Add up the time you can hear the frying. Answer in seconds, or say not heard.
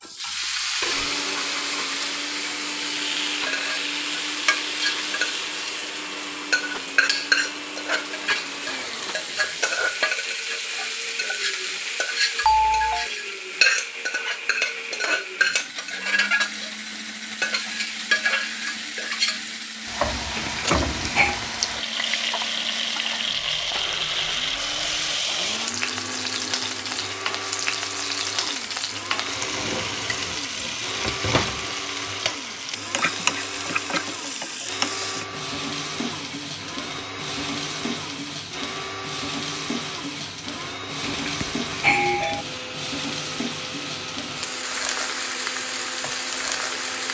47 s.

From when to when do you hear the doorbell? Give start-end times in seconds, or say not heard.
12.4-13.1, 20.4-21.4, 41.2-42.5.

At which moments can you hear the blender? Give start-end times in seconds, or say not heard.
0.0-47.1.